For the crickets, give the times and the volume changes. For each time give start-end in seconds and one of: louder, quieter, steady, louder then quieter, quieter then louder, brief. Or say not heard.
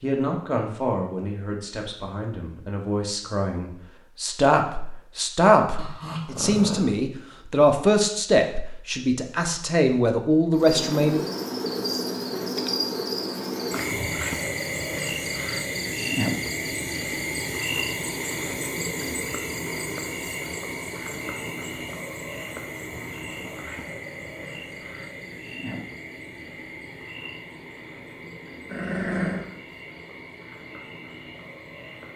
10.6-32.1 quieter.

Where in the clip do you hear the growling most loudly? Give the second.
29 s.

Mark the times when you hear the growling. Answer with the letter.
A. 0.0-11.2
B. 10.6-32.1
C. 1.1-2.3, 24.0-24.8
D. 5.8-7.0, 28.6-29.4
D.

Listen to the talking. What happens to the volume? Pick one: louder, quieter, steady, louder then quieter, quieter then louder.
louder.